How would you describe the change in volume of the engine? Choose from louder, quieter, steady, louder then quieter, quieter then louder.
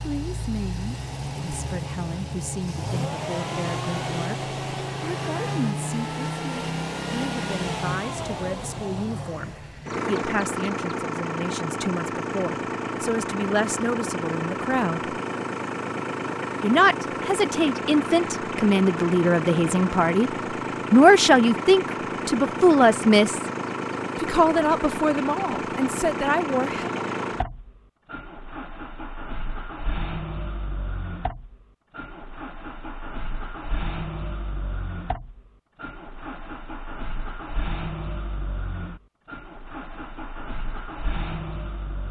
quieter.